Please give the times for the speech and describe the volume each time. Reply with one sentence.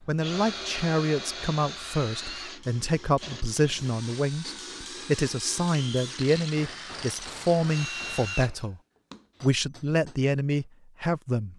The speech can be heard from 0.1 to 8.8 s, at a steady volume; and briefly from 9.4 to 11.5 s.